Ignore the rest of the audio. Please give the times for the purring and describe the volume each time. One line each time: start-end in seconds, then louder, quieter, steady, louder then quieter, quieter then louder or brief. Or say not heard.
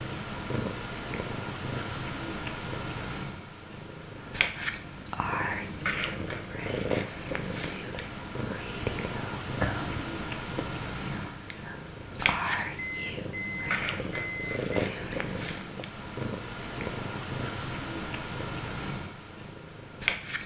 0.0-20.4 steady.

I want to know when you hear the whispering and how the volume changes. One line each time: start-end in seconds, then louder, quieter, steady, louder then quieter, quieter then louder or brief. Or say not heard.
4.2-15.3 steady.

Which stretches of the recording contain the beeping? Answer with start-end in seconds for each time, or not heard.
12.8-14.8.